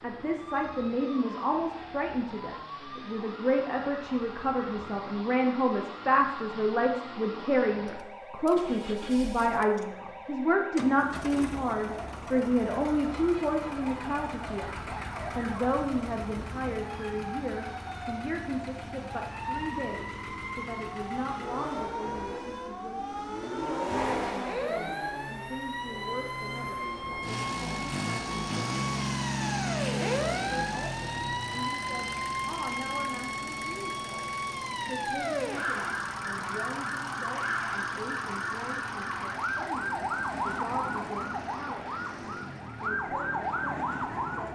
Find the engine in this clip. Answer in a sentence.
The engine can be heard from 0.0 to 44.5 s.